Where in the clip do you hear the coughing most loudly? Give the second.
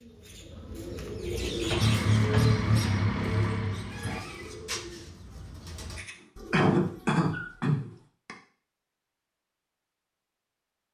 7 s.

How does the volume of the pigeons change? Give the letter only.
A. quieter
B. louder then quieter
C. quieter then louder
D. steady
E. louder
A.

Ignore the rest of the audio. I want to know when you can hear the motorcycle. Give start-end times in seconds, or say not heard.
1.6-4.3.